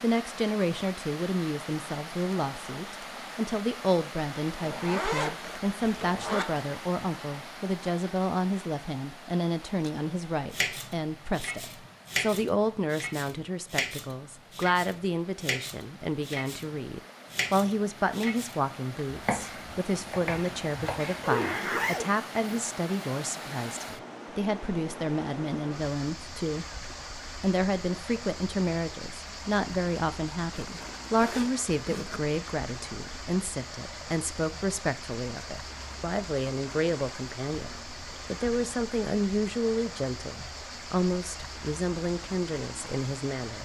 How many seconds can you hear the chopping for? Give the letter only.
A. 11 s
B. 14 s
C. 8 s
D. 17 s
A.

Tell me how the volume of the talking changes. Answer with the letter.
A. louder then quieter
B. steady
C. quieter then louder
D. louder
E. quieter
B.